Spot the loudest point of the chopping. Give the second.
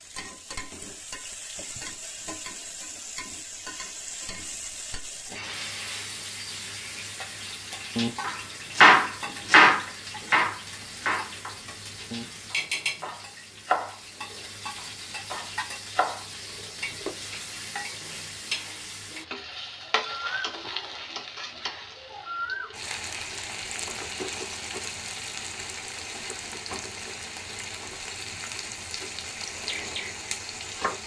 9 s.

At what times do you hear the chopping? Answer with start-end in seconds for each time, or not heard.
8.0-17.2, 29.6-31.0.